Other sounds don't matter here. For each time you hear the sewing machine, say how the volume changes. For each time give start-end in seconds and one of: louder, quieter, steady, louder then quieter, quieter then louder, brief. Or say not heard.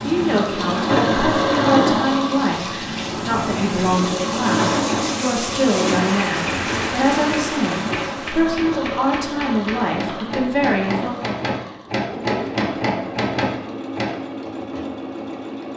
0.0-15.7 quieter.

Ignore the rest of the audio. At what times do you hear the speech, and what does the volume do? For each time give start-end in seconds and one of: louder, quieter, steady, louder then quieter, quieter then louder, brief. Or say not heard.
0.0-11.1 steady.